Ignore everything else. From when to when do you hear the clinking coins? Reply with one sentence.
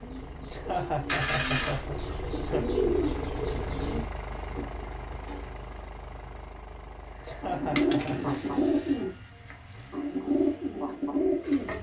You can hear the clinking coins from 1.1 to 1.9 s and from 7.8 to 8.9 s.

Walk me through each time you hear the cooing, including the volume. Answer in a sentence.
You can hear the cooing from 0.0 to 5.5 s, getting louder then quieter; and from 7.2 to 11.7 s, getting quieter then louder.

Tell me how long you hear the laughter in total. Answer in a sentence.
You can hear the laughter for 3 seconds altogether.